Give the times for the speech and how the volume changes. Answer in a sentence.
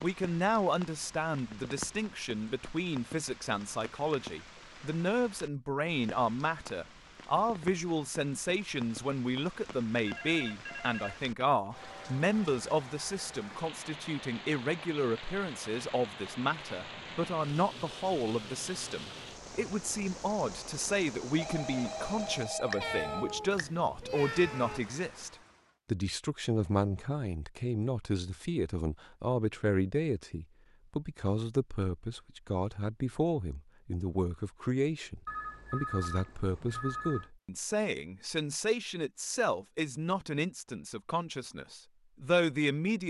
You can hear the speech from 0.0 to 43.0 s, at a steady volume.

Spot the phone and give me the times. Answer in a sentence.
The phone can be heard from 10.1 to 11.7 s, from 21.4 to 23.4 s and from 35.2 to 37.3 s.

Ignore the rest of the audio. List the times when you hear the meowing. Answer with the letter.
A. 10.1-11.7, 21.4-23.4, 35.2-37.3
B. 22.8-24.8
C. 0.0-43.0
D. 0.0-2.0
B.